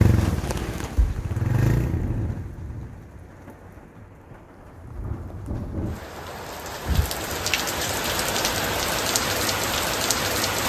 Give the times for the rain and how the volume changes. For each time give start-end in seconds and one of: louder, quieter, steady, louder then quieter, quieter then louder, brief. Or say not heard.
0.0-10.6 quieter then louder.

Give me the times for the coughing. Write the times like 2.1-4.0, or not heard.
not heard.